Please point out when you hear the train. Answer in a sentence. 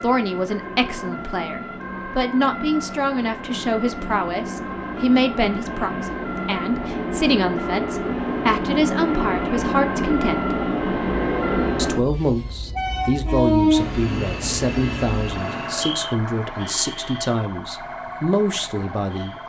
You can hear the train from 0.0 to 16.1 s.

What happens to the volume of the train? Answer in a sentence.
The volume of the train goes up.